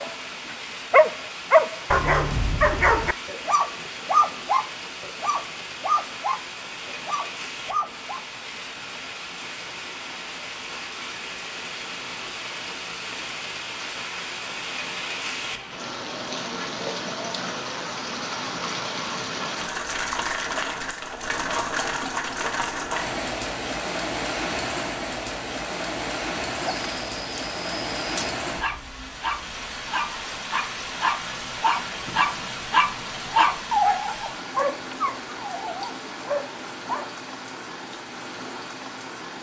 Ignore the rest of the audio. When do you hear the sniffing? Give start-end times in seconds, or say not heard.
not heard.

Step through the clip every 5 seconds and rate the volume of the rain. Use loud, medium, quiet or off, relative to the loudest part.
medium, medium, medium, loud, loud, loud, medium, medium.